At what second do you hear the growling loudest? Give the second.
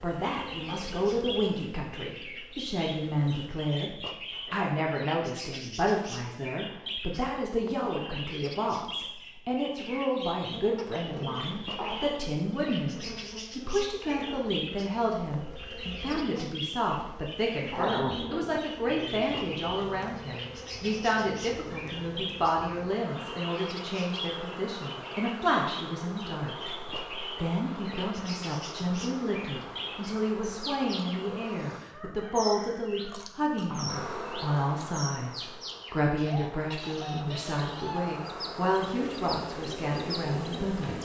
18 s.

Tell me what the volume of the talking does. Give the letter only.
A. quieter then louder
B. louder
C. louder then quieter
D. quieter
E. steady
E.